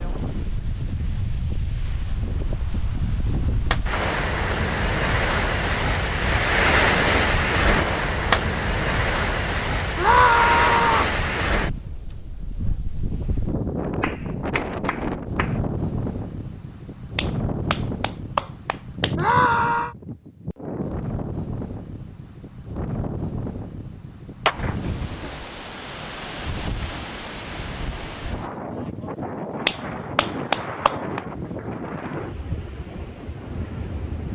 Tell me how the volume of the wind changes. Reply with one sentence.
The loudness of the wind goes down.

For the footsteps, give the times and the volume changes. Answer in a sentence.
The footsteps can't be heard in this clip.